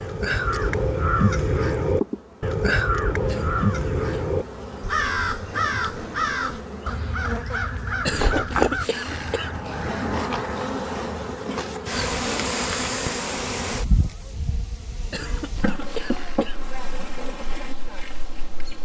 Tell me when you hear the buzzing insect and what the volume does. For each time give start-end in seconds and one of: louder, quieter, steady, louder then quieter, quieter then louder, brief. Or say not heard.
0.0-18.8 louder then quieter.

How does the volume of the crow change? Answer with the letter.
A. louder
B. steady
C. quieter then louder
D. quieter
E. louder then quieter
D.